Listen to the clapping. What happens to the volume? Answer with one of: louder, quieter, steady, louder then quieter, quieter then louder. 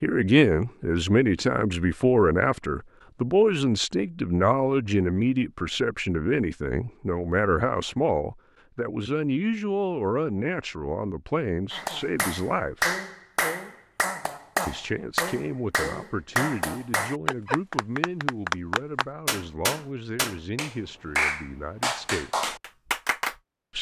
steady.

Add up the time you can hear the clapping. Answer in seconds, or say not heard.
12 s.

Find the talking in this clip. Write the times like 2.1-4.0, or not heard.
0.0-12.9, 14.7-22.5.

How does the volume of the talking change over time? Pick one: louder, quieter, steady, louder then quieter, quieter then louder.
quieter.